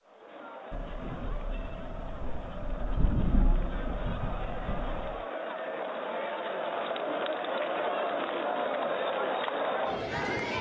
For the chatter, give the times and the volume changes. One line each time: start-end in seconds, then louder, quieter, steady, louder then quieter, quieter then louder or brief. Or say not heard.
0.0-10.5 louder.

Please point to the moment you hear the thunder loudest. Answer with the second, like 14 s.
3 s.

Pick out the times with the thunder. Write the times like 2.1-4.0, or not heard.
0.7-5.2.